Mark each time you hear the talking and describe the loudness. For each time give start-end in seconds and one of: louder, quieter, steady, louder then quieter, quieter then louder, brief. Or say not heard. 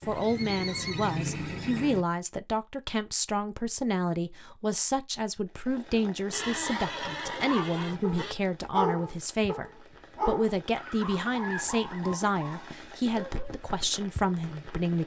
0.1-15.0 steady.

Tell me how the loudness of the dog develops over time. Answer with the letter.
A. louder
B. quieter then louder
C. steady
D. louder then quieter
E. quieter
E.